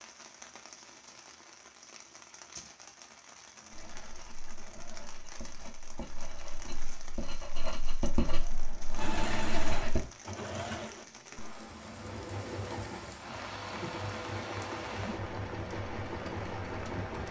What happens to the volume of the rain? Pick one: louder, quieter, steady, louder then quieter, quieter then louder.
louder.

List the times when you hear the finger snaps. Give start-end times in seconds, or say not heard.
not heard.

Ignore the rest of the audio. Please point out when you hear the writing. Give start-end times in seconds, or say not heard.
3.7-10.0.